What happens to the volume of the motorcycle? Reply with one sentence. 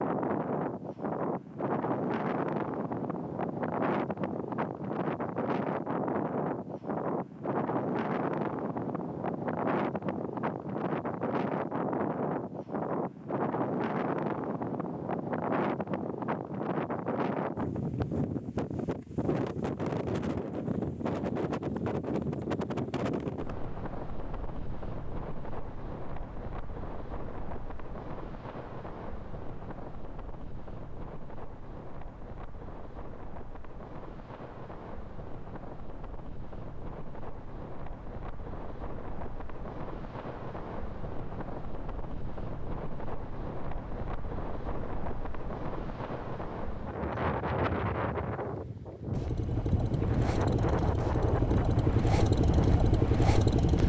The loudness of the motorcycle goes up.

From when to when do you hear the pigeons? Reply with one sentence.
The pigeons can't be heard in this clip.